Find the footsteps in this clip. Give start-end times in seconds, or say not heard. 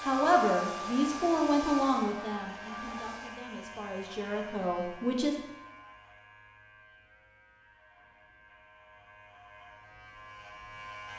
not heard.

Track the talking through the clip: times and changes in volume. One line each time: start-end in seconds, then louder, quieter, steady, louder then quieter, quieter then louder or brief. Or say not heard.
0.0-5.3 quieter then louder.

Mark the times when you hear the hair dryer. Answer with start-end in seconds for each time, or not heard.
0.0-3.5.